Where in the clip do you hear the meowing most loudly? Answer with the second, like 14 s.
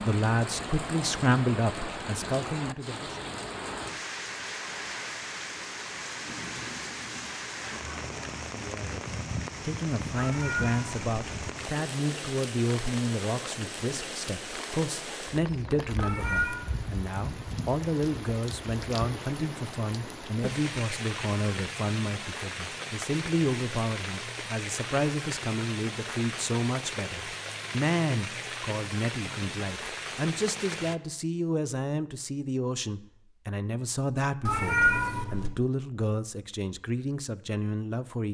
35 s.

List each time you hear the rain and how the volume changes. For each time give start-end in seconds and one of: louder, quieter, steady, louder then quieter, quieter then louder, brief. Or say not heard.
0.0-30.9 steady.